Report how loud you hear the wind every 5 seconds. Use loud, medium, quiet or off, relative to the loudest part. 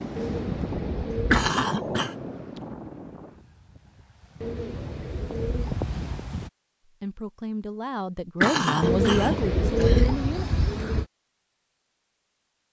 loud, loud, off.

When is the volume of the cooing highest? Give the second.
10 s.